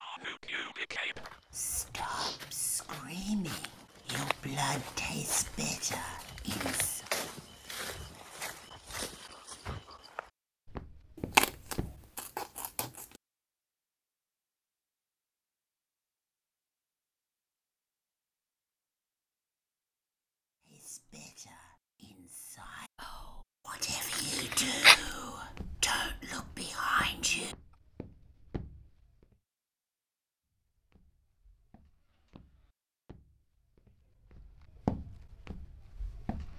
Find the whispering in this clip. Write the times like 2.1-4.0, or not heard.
0.0-7.0, 20.6-27.6.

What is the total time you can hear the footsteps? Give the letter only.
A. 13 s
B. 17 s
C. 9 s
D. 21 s
D.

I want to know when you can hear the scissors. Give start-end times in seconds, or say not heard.
11.3-13.1, 24.1-25.0.